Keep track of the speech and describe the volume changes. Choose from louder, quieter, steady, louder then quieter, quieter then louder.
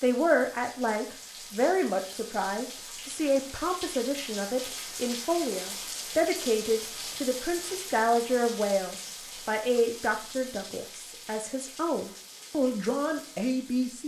steady.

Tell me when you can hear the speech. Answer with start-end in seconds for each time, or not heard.
0.0-14.0.